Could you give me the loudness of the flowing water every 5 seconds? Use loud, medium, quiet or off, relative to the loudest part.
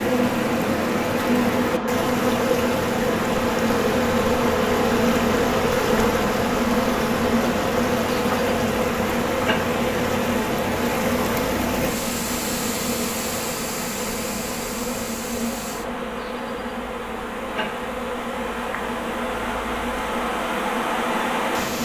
loud, loud, loud, medium, loud.